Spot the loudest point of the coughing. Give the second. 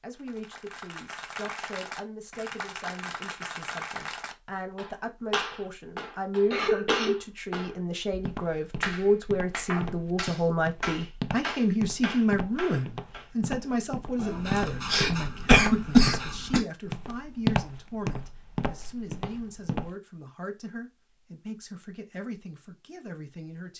16 s.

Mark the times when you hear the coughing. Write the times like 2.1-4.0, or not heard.
6.5-7.2, 14.2-16.6.